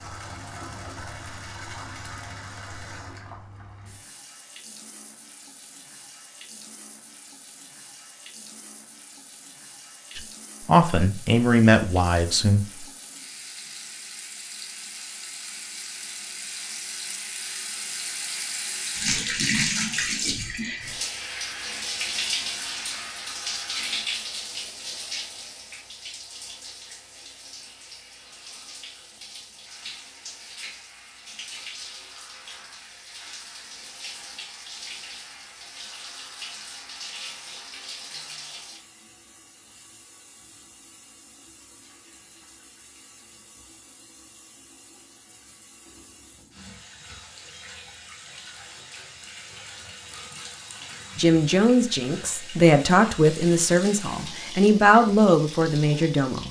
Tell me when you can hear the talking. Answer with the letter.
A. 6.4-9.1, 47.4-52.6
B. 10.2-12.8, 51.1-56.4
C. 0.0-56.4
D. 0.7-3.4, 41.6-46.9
B.